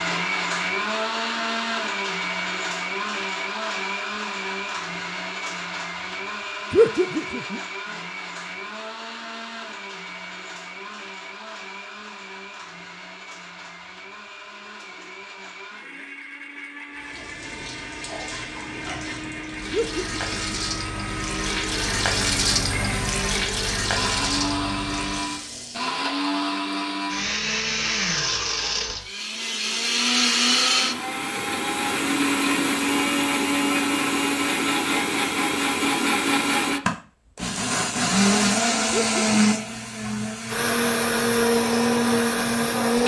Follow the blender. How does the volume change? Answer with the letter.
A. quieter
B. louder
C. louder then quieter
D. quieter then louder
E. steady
D.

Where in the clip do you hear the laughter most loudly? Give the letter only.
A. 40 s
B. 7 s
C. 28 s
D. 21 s
B.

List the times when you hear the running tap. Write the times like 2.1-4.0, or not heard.
16.9-26.0.